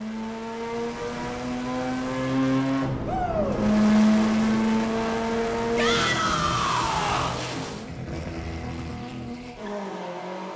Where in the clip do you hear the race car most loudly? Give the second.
4 s.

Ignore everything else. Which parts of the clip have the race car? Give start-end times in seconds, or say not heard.
0.0-10.5.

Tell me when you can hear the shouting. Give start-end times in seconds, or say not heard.
3.0-3.6, 5.8-7.4.